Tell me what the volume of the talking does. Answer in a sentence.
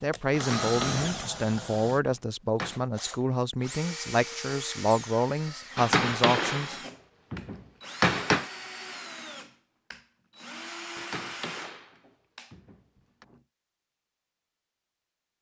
The loudness of the talking stays about the same.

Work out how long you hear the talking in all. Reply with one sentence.
The talking can be heard for 7 seconds in total.